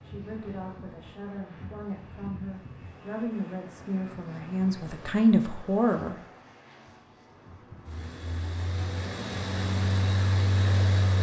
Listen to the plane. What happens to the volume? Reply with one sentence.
The volume of the plane goes up.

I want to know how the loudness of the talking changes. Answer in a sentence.
The volume of the talking goes up.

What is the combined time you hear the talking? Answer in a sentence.
You can hear the talking for 6 seconds altogether.